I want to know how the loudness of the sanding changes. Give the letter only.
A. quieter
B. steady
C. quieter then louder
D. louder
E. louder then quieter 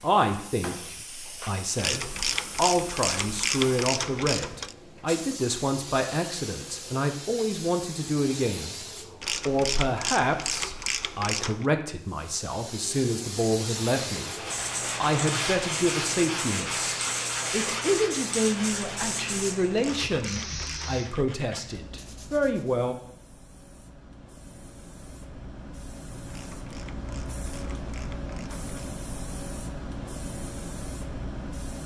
A.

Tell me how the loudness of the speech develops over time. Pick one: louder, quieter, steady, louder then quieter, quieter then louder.
steady.